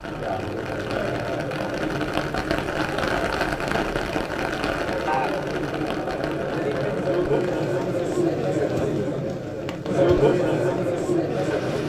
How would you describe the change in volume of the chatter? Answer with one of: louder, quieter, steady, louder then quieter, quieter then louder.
louder.